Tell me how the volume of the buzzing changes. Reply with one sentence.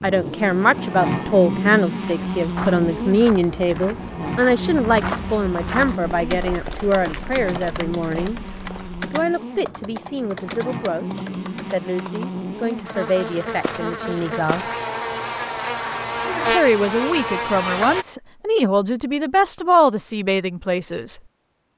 The loudness of the buzzing goes down, then up.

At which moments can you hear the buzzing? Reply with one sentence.
You can hear the buzzing from 0.0 to 18.1 s.